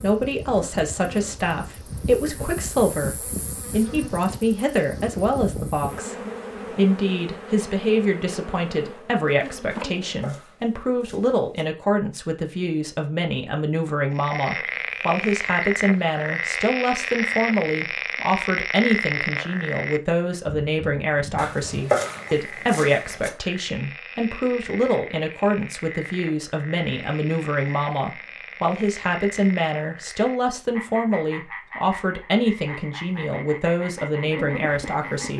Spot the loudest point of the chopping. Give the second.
22 s.